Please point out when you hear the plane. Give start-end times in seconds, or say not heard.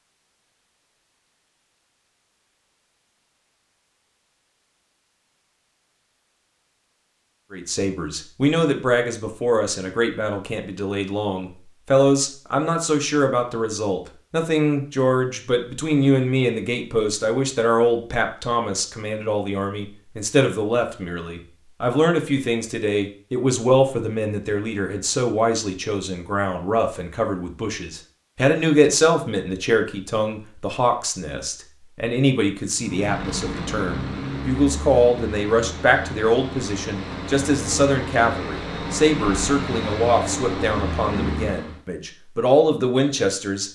32.7-41.8.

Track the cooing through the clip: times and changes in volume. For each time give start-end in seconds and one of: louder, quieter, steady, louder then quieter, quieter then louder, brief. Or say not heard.
not heard.